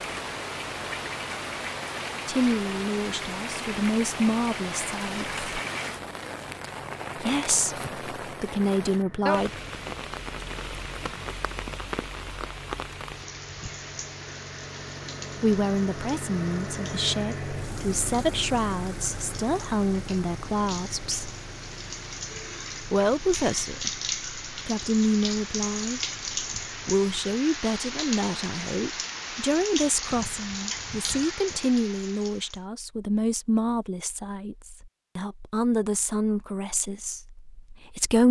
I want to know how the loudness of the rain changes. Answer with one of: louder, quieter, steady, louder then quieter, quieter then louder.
quieter then louder.